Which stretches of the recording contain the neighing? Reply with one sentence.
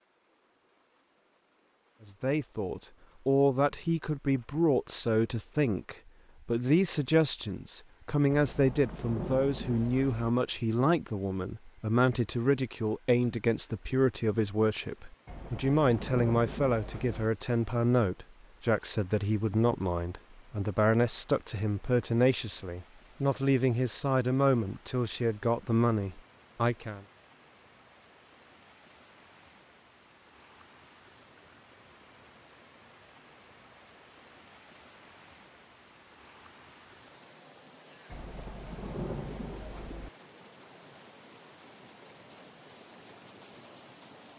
You can't hear the neighing here.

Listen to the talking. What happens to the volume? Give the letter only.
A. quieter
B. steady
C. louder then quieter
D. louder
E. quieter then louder
B.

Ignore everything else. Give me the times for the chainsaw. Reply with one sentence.
You can't hear the chainsaw here.